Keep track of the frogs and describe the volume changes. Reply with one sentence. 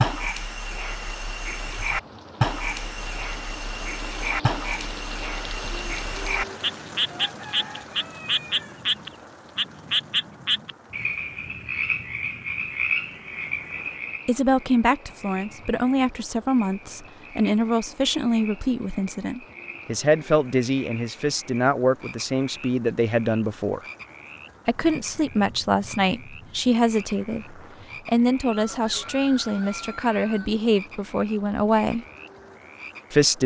The loudness of the frogs goes down.